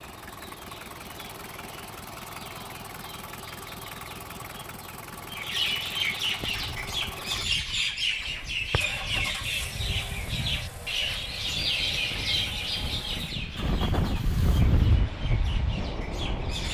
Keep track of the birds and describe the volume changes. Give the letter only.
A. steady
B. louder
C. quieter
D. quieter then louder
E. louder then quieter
E.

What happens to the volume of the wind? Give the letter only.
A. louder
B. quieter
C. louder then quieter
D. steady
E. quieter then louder
A.